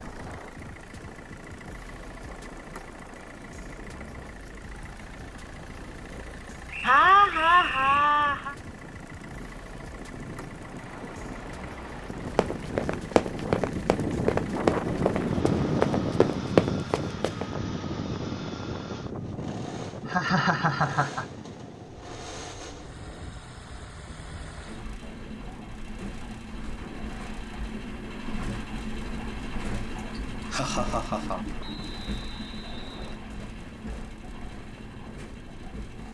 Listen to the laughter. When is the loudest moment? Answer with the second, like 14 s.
7 s.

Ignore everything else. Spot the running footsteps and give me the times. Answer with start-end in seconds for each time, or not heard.
12.3-17.4.